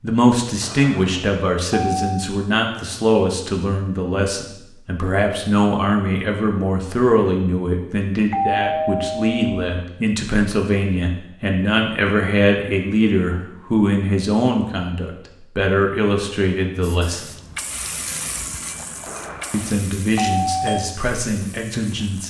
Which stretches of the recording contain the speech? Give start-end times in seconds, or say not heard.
0.0-17.4, 19.5-22.2.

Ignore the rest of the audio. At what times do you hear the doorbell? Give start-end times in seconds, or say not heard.
0.6-2.1, 8.3-9.6, 19.1-20.8.